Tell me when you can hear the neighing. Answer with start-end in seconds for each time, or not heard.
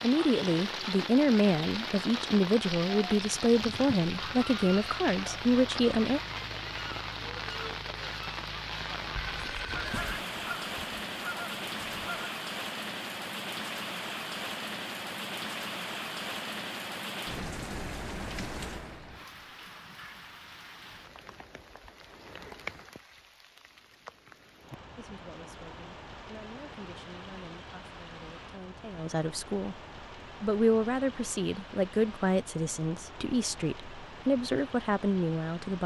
9.2-10.2.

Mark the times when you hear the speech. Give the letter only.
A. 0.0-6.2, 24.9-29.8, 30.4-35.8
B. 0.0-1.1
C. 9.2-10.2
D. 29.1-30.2
A.